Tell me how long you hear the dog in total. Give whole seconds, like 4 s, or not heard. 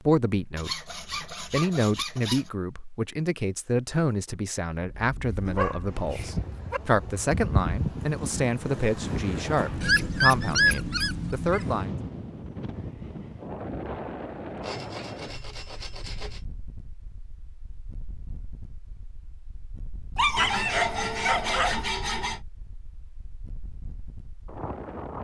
5 s.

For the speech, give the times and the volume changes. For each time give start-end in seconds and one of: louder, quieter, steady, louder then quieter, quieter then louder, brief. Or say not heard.
0.0-11.9 steady.